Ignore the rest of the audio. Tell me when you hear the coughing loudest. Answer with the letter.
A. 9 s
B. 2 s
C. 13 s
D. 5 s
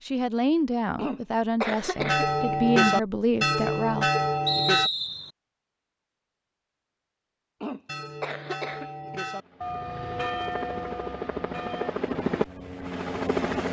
B.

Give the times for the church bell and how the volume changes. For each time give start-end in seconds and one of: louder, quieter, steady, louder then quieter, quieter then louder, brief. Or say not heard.
1.9-4.9 brief
7.8-11.9 louder then quieter.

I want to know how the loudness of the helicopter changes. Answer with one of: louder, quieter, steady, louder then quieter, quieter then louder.
louder then quieter.